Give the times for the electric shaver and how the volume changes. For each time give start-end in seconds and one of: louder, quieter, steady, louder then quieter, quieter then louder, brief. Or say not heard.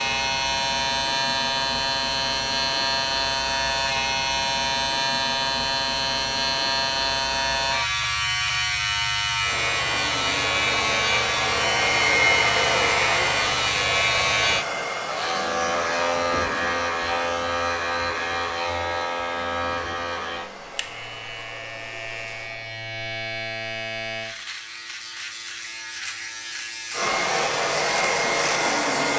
0.0-29.1 quieter.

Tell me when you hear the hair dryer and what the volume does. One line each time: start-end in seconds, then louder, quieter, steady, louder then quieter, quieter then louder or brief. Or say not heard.
9.4-22.8 quieter
26.9-29.1 brief.